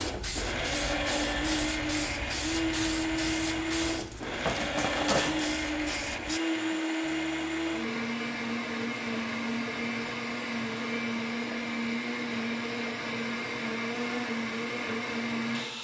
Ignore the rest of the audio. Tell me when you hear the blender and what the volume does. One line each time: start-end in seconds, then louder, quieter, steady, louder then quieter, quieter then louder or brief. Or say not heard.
0.0-15.7 steady.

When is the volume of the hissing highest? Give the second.
5 s.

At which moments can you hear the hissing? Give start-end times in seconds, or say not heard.
0.0-6.4.